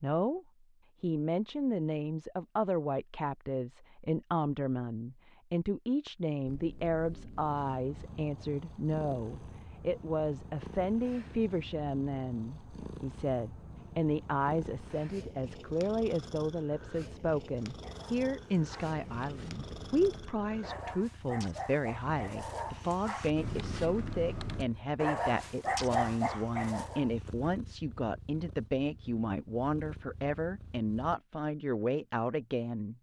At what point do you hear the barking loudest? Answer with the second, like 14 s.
26 s.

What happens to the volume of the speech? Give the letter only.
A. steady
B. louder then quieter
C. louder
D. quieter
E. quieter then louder
A.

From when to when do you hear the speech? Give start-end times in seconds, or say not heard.
0.0-32.9.